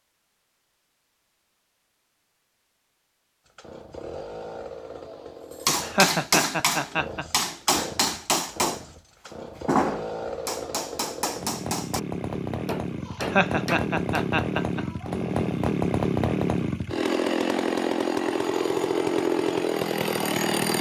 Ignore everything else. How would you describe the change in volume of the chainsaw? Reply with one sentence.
The loudness of the chainsaw goes up.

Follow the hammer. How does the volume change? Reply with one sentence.
The loudness of the hammer goes down.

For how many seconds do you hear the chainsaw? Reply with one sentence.
The chainsaw can be heard for 17 seconds in total.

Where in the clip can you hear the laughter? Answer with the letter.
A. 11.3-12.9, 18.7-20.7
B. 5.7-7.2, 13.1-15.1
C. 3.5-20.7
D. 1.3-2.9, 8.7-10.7
B.